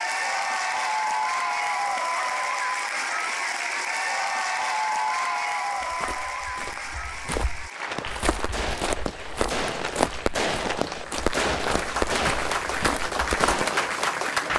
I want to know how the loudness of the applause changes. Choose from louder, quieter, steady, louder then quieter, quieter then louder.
quieter then louder.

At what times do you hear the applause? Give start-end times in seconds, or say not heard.
0.0-14.5.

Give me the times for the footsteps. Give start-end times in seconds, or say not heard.
5.8-13.7.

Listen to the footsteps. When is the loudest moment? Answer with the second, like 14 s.
10 s.